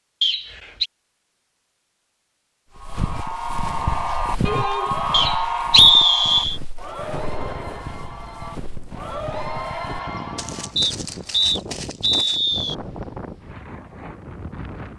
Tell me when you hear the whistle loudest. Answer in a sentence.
The loudest moment of the whistle is at 6 seconds.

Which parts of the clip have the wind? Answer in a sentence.
The wind can be heard from 6.8 to 14.9 s.